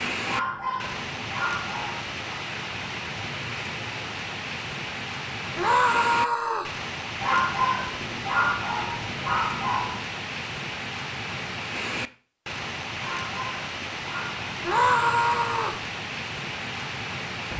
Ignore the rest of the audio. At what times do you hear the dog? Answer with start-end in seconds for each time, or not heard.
0.2-2.4, 7.2-10.0, 12.9-14.5.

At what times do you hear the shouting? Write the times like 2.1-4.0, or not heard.
5.5-6.8, 14.6-15.8.